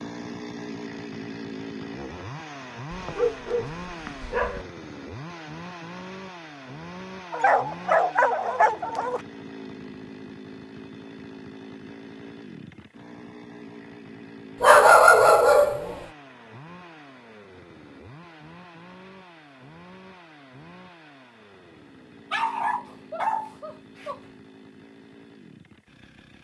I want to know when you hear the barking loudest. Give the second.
15 s.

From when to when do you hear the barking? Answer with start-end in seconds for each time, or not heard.
2.9-4.7, 7.3-9.2, 14.6-15.9, 22.3-24.2.